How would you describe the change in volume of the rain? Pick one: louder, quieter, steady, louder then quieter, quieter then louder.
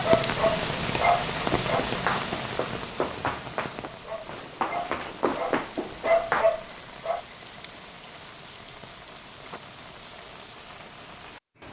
quieter.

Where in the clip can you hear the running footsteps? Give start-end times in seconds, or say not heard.
1.4-6.5.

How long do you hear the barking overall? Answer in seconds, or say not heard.
5 s.